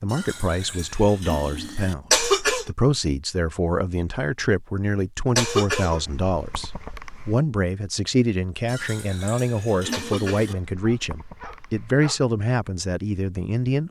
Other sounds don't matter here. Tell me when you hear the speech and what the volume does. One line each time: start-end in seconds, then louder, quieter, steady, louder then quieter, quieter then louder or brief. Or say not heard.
0.0-13.8 steady.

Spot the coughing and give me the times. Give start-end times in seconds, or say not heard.
2.1-2.7, 5.3-7.3, 9.9-11.9.